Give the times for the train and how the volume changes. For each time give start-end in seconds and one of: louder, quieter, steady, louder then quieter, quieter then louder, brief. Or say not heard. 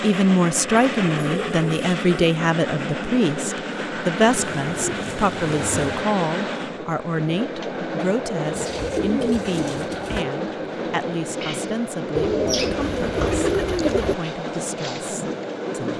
0.0-15.9 steady.